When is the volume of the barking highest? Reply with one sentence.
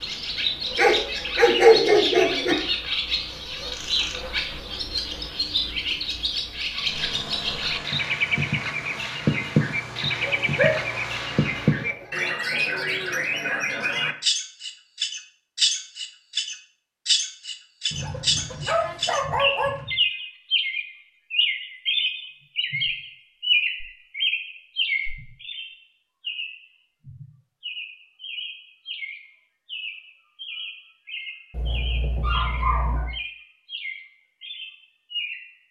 The loudest moment of the barking is at 2 seconds.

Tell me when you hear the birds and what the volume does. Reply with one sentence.
You can hear the birds from 0.0 to 35.5 s, getting quieter.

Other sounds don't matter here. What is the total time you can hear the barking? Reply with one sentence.
The barking can be heard for 7 seconds in total.